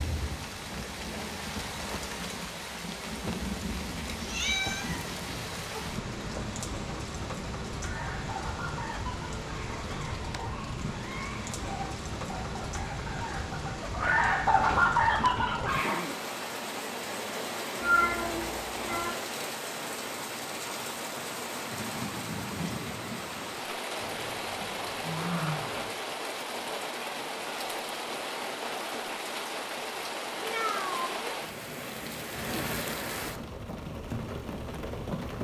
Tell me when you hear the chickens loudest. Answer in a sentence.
The volume of the chickens peaks at 15 seconds.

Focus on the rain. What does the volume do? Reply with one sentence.
The loudness of the rain stays about the same.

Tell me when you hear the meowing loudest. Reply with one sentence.
The volume of the meowing peaks at 18 seconds.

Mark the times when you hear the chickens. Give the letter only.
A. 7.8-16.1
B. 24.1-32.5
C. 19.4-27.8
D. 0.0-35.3
A.